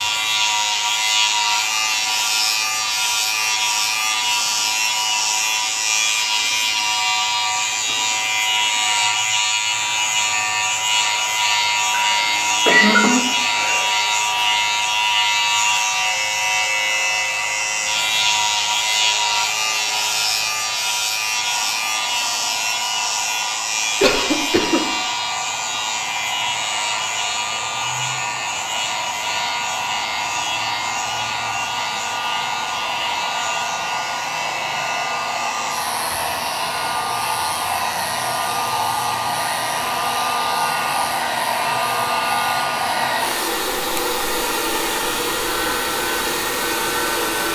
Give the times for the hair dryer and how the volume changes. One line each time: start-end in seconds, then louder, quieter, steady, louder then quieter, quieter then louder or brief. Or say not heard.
0.0-47.5 louder.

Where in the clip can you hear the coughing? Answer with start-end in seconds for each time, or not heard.
11.9-13.9, 24.0-24.8.